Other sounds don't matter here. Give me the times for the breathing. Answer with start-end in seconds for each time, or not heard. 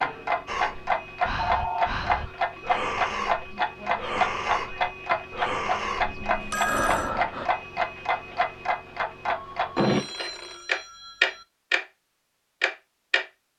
0.5-7.5.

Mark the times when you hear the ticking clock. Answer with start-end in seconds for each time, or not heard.
0.0-11.8, 12.6-13.2.